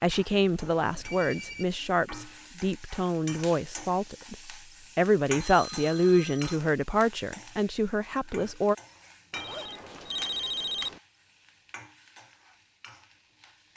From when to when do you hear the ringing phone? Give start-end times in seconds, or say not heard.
0.3-1.6, 5.4-6.6, 9.3-11.0.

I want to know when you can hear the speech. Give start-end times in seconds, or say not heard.
0.0-8.8.